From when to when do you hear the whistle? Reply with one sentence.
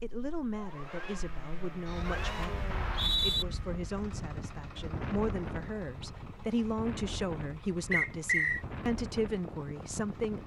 You can hear the whistle from 2.7 to 3.5 s and from 7.9 to 8.6 s.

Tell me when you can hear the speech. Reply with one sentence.
You can hear the speech from 0.0 to 10.4 s.